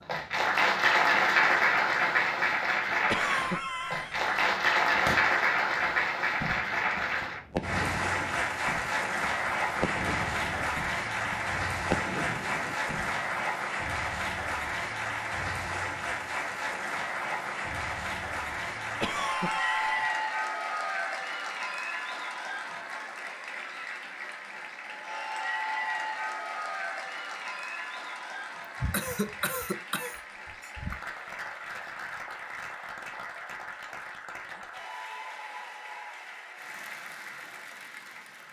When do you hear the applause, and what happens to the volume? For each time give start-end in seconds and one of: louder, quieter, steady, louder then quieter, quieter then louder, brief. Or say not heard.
0.0-38.4 quieter.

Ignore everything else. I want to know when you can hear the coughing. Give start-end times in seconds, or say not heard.
3.0-4.3, 19.0-20.2, 28.8-31.0.